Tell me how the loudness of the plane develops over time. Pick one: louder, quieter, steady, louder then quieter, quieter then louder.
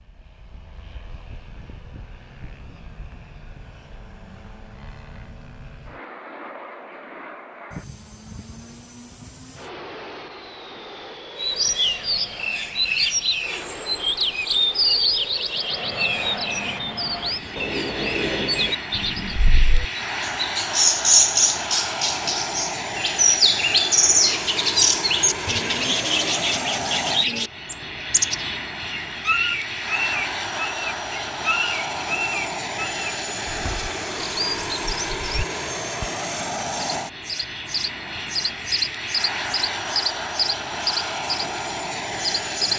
louder.